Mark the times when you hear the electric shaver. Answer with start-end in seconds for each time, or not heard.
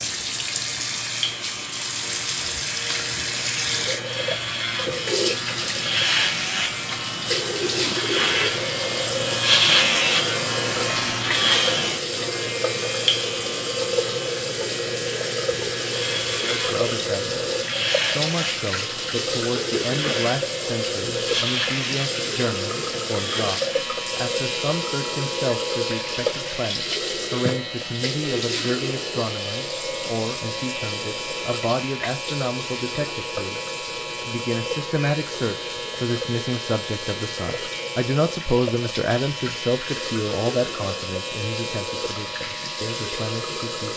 0.0-43.9.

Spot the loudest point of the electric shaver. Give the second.
10 s.